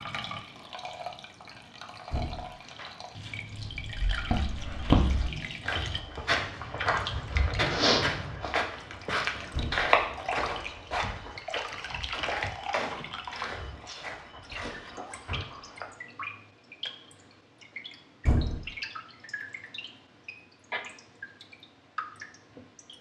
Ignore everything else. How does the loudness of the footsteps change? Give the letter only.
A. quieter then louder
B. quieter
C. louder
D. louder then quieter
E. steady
B.